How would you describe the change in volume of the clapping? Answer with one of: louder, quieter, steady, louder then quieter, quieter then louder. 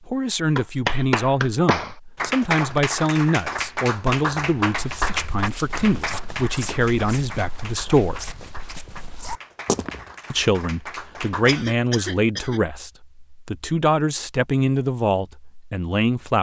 quieter.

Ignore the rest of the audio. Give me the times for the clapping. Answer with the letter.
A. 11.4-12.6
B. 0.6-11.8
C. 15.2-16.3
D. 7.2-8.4
B.